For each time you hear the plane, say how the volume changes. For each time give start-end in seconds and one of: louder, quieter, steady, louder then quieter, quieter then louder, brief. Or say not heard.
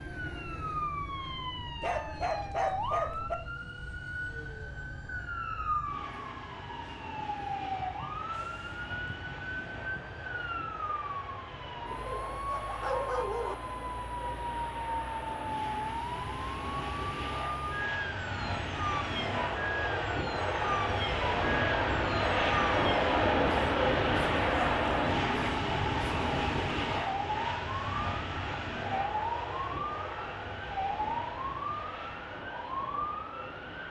0.0-33.8 louder then quieter.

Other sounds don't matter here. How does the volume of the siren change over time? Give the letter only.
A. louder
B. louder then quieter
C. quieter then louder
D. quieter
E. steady
E.